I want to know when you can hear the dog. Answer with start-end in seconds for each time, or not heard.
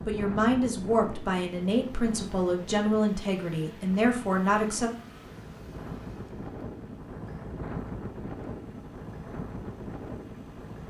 not heard.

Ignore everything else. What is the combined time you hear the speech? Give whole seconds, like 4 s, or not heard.
5 s.